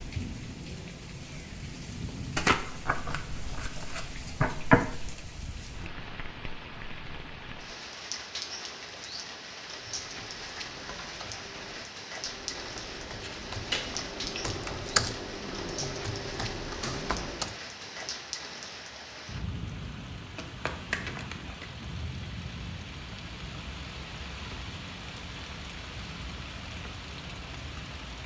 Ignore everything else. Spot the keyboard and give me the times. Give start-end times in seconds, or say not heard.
9.7-17.6.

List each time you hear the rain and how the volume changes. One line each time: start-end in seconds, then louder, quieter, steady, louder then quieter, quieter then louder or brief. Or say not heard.
0.0-28.2 steady.